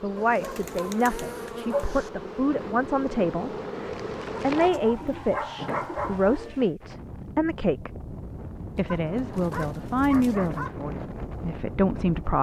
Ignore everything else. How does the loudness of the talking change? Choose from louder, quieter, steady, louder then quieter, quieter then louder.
steady.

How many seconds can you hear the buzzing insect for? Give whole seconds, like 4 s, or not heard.
5 s.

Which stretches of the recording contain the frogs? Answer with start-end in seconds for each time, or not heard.
not heard.